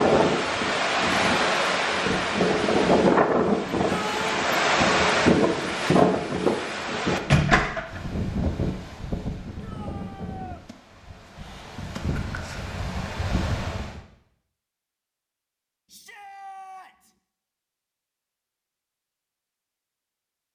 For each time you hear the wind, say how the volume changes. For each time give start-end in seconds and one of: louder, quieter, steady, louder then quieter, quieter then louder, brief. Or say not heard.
0.0-14.0 quieter.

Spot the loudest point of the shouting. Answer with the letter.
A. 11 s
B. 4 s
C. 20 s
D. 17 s
B.